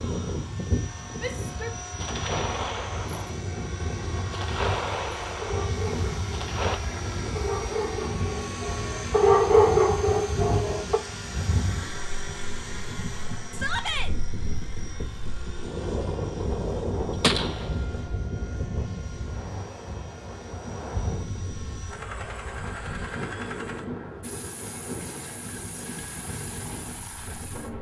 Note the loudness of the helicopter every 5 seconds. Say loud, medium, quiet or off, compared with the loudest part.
loud, loud, loud, medium, medium, medium.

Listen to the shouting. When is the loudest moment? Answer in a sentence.
The volume of the shouting peaks at 14 seconds.